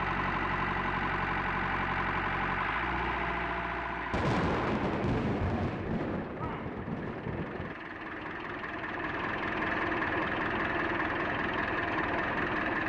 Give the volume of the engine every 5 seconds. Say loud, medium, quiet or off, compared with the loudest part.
loud, medium, loud.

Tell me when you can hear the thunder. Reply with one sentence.
You can hear the thunder from 4.1 to 7.8 s.